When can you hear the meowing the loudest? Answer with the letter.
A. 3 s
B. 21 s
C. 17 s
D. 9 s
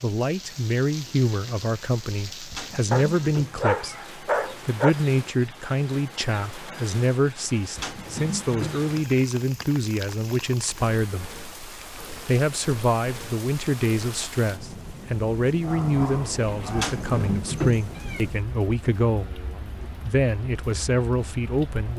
C.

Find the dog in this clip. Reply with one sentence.
The dog can be heard from 2.9 to 4.9 s and from 15.6 to 16.9 s.